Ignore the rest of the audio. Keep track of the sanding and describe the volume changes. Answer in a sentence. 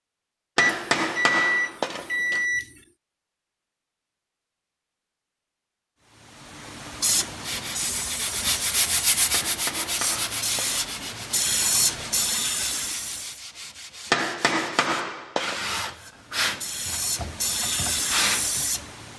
The loudness of the sanding goes down, then up.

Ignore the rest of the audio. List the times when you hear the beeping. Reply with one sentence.
You can hear the beeping from 0.6 to 2.7 s.